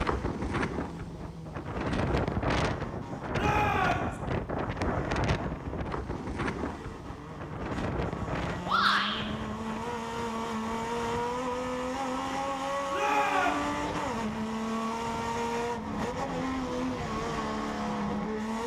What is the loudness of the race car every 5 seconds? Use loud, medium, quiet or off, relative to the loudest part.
quiet, medium, loud, loud.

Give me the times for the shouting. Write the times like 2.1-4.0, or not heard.
3.3-4.2, 8.7-9.2, 12.9-13.7.